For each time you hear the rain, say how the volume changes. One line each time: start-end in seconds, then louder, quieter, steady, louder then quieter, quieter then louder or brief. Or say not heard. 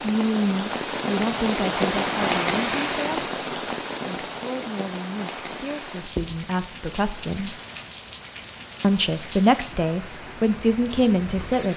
0.0-11.7 quieter.